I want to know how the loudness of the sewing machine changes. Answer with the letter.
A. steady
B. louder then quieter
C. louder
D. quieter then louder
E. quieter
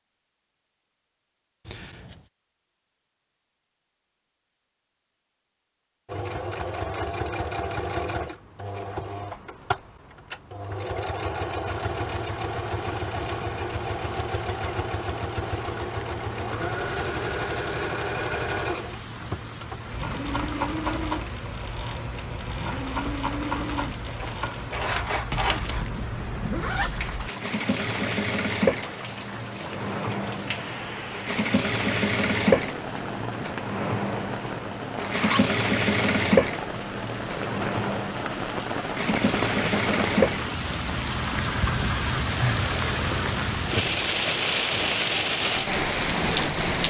C.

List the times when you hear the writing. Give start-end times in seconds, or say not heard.
not heard.